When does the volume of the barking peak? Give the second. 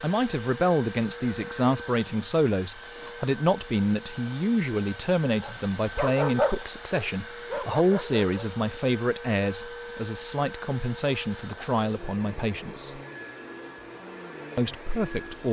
6 s.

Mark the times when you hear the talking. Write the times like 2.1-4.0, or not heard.
0.0-13.0, 14.6-15.4.